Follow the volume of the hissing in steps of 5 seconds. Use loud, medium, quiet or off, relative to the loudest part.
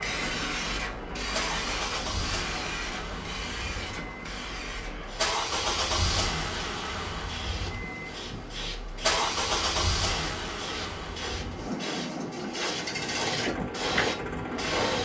loud, medium, loud.